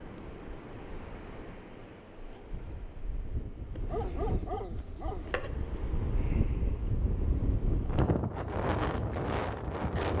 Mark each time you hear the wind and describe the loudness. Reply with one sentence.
The wind can be heard from 0.0 to 10.1 s, getting louder.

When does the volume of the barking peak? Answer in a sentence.
The volume of the barking peaks at 4 seconds.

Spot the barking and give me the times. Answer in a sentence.
The barking can be heard from 3.9 to 5.4 s.